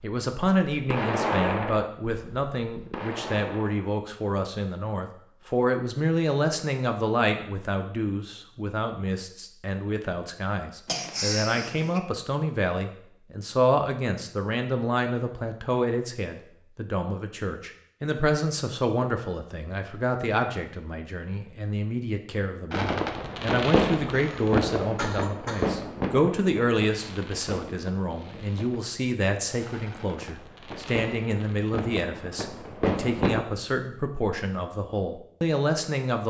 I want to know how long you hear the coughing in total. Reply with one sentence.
The coughing can be heard for 3 seconds in total.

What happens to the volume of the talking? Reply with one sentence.
The loudness of the talking stays about the same.